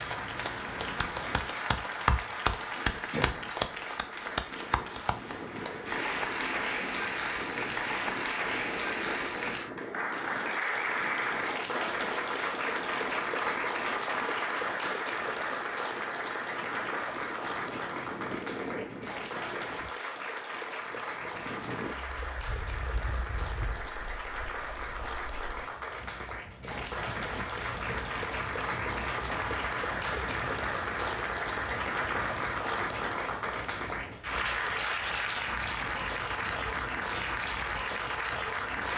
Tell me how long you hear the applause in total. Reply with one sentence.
The applause can be heard for 39 seconds in total.